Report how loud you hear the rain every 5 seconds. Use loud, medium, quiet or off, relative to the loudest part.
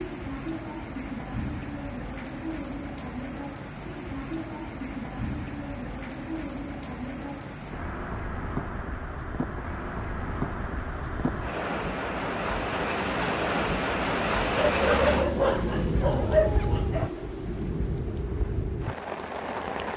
medium, medium, loud, loud.